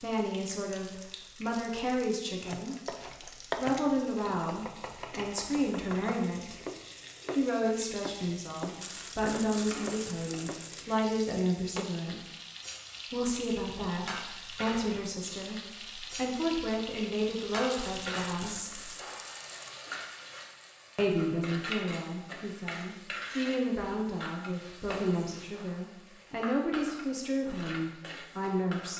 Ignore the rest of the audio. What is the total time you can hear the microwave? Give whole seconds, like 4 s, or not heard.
not heard.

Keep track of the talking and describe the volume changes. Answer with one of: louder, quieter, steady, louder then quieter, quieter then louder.
steady.